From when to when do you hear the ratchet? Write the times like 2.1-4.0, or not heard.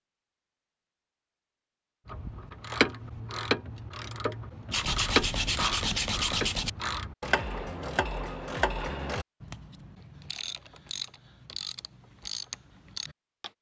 2.0-13.5.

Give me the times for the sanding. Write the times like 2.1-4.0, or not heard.
4.7-6.7.